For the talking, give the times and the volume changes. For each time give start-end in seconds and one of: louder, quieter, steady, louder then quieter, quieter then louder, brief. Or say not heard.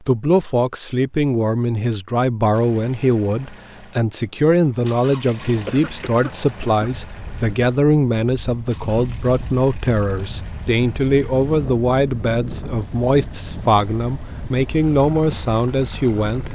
0.1-16.5 steady.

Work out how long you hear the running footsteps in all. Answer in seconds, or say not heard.
not heard.